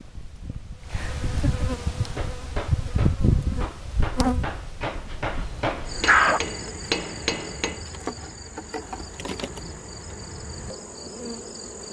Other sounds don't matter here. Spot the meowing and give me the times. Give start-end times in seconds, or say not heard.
not heard.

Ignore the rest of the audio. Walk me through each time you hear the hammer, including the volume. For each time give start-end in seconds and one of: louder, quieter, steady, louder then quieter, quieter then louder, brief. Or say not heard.
1.9-7.8 louder.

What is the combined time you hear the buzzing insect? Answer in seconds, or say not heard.
12 s.